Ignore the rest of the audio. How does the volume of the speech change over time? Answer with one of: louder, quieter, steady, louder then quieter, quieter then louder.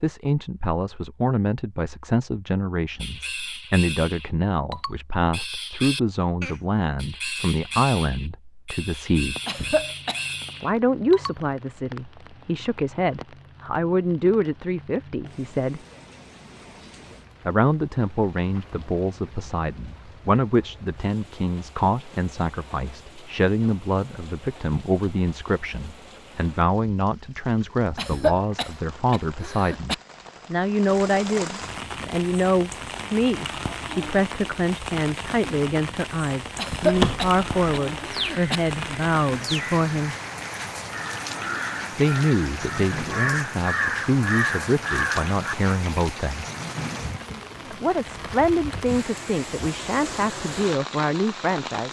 steady.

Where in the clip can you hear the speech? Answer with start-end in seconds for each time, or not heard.
0.0-9.3, 10.6-15.8, 17.4-40.1, 42.0-46.5, 47.7-51.8.